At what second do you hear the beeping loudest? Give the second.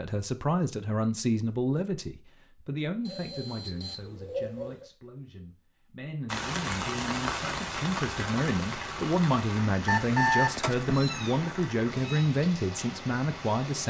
10 s.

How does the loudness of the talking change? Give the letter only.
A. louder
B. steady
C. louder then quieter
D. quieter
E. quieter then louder
E.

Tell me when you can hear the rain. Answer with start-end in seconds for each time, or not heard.
6.2-13.8.